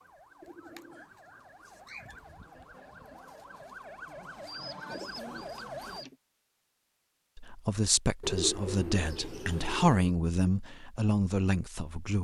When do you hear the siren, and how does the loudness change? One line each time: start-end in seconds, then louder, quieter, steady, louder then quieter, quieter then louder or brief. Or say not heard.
0.0-6.0 louder.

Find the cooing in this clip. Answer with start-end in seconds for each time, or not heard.
0.4-2.2, 4.5-6.2, 8.2-10.0.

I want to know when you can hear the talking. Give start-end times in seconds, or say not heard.
7.3-12.1.